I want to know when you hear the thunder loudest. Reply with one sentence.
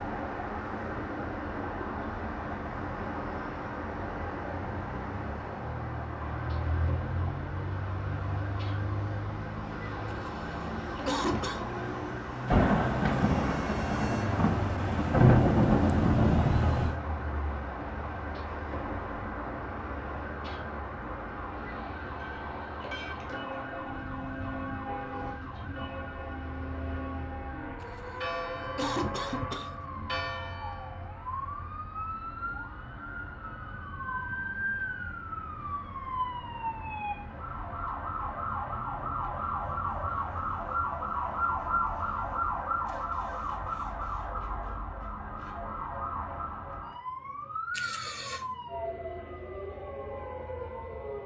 The volume of the thunder peaks at 15 seconds.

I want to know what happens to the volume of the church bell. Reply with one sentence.
The loudness of the church bell stays about the same.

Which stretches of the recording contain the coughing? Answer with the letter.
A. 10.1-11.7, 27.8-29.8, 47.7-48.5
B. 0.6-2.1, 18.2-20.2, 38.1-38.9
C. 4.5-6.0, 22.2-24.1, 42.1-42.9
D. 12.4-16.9
A.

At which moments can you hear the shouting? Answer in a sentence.
You can't hear the shouting here.